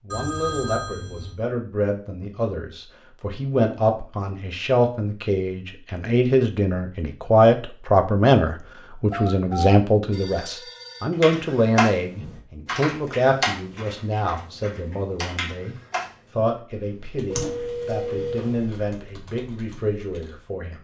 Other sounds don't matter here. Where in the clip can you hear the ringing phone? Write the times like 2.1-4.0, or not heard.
0.1-1.4, 9.1-11.1, 17.2-18.8.